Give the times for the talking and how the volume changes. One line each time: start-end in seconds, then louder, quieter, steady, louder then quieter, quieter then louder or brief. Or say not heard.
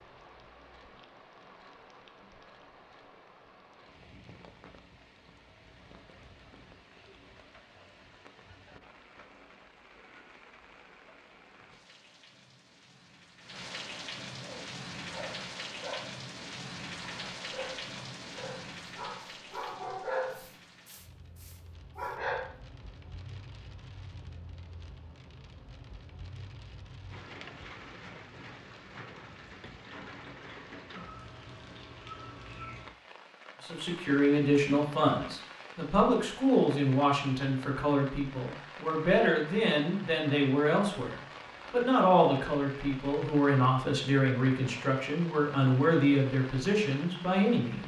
33.6-47.8 steady.